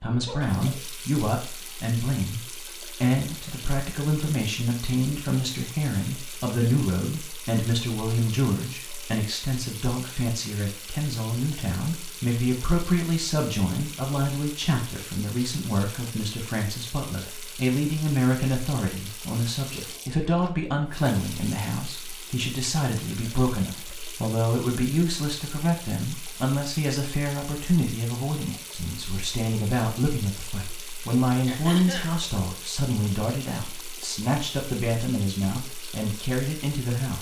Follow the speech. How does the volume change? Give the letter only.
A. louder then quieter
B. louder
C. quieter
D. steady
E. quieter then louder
D.